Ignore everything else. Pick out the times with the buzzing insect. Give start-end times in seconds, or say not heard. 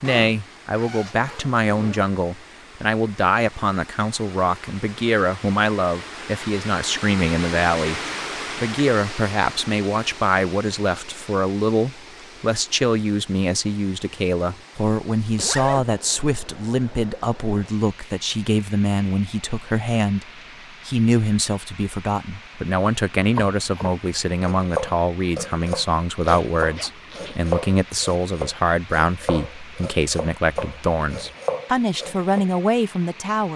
not heard.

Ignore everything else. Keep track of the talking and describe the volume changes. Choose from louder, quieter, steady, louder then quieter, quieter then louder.
steady.